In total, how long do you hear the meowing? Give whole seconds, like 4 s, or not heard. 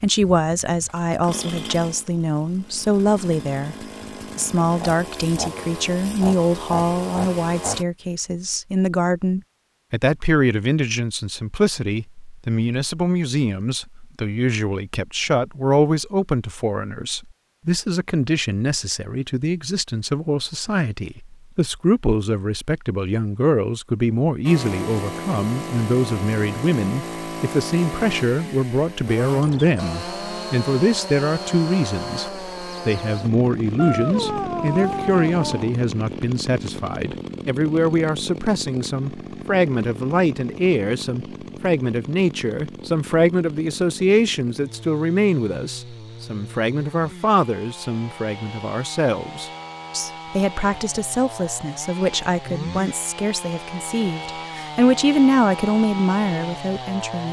2 s.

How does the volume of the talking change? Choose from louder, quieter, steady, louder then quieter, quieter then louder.
steady.